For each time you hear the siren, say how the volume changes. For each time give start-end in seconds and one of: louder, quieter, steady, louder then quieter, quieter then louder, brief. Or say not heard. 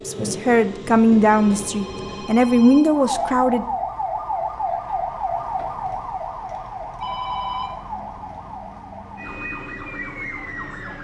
2.9-10.9 quieter.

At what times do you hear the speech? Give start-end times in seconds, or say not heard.
0.1-3.6.